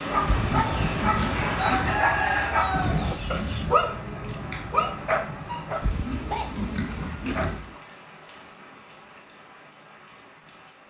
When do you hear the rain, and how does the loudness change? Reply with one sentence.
You can hear the rain from 0.0 to 10.8 s, getting quieter.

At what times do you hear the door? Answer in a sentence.
You can't hear the door here.